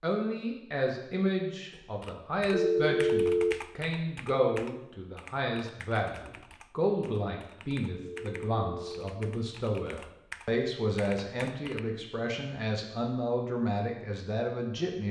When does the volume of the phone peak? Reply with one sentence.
The volume of the phone peaks at 3 seconds.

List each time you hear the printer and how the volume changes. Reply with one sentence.
You can't hear the printer here.